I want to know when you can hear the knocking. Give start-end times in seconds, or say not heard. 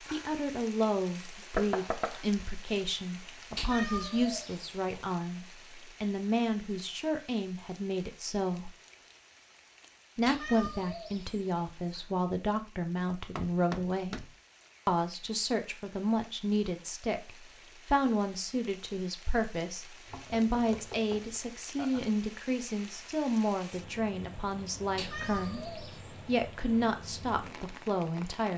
1.6-2.2, 13.3-14.3, 20.1-22.0.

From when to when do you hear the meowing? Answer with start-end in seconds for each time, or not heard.
3.5-4.9, 10.2-11.4, 24.9-26.2.